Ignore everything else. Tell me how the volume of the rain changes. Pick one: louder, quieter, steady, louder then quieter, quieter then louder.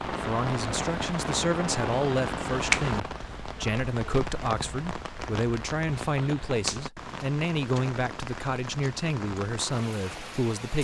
quieter.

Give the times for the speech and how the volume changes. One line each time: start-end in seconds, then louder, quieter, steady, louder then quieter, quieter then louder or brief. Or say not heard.
0.1-10.7 steady.